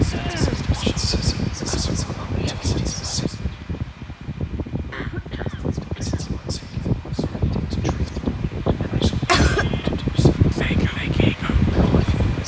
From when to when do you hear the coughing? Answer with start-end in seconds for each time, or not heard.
0.1-0.7, 4.9-6.2, 9.2-9.9.